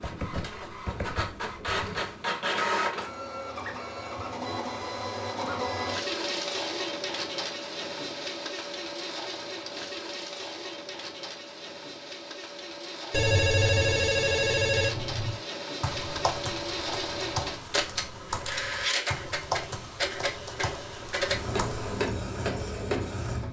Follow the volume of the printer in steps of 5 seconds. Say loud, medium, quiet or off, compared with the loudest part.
loud, loud, medium, loud, loud.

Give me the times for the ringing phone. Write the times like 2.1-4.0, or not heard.
13.1-15.4.